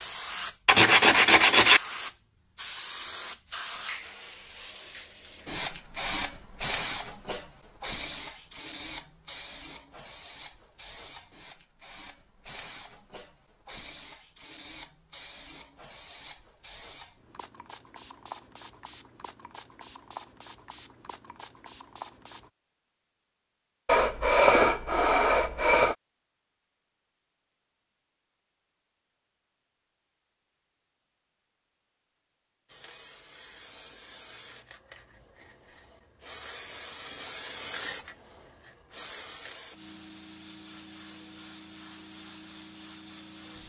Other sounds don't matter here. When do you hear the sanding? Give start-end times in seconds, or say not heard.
0.7-1.8, 23.9-25.9.